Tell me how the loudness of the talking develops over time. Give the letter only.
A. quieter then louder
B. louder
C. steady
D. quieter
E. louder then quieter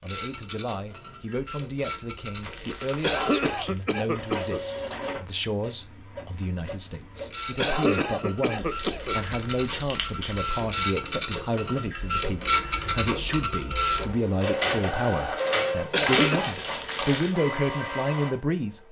B.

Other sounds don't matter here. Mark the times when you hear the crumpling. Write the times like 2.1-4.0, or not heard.
2.3-3.9, 8.6-10.4, 15.9-17.4.